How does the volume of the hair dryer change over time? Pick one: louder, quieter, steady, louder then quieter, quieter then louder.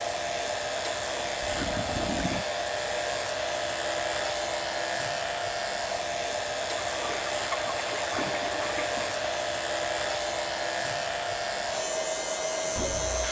steady.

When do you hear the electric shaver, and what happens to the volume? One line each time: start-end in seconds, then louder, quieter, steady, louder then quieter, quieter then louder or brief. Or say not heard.
0.0-13.2 steady.